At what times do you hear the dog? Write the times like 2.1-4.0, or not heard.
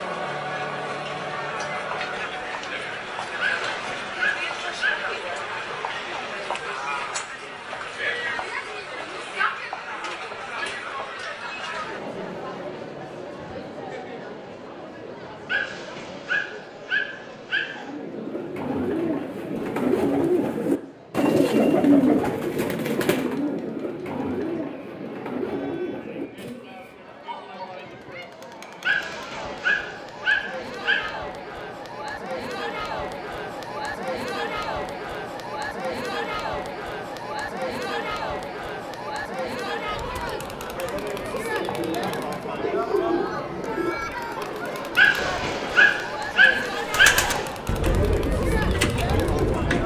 3.4-5.2, 15.4-17.9, 28.8-31.1, 45.0-47.5.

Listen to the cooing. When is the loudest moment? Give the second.
22 s.